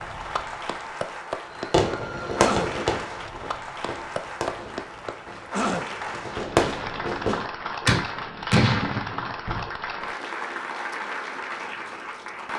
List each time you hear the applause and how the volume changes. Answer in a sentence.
You can hear the applause from 0.0 to 12.5 s, at a steady volume.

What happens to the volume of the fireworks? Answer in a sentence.
The volume of the fireworks goes down, then up.